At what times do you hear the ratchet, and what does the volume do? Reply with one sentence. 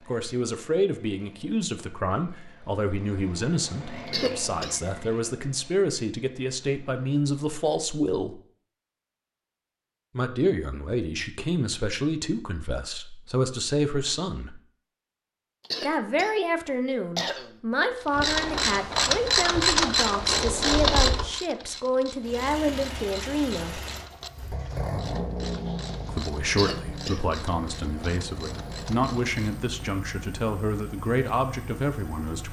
You can hear the ratchet from 18.1 to 29.6 s, getting quieter.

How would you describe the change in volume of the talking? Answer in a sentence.
The loudness of the talking stays about the same.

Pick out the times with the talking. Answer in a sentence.
You can hear the talking from 0.1 to 8.4 s, from 10.2 to 14.6 s, from 15.8 to 23.8 s and from 26.1 to 32.4 s.